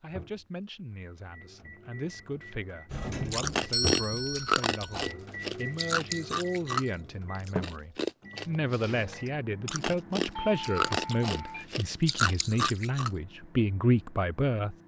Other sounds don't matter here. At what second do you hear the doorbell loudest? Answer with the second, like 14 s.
4 s.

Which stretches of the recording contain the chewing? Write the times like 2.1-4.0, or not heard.
3.3-13.1.